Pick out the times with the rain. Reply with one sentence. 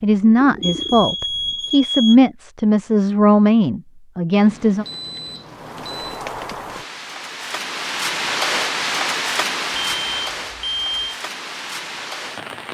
The rain can be heard from 5.4 to 12.6 s.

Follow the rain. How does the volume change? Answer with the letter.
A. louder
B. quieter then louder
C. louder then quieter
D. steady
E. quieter
C.